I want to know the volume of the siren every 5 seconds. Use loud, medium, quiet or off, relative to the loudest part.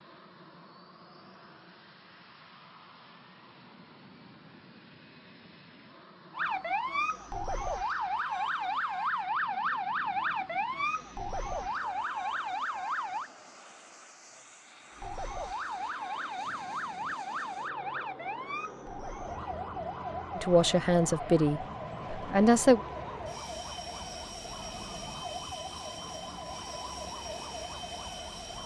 off, loud, loud, medium, medium, medium.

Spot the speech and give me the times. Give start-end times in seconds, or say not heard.
20.4-22.8.